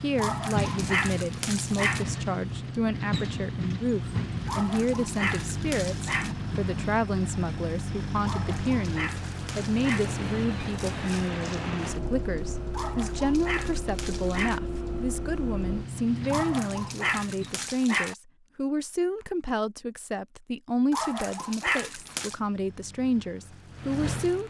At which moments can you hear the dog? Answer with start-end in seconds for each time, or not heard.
0.1-2.0, 4.5-6.3, 8.2-10.1, 12.7-14.6, 16.3-18.1, 20.9-22.4.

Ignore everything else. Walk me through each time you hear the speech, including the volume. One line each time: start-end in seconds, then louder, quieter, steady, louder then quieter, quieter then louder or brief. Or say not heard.
0.0-24.4 steady.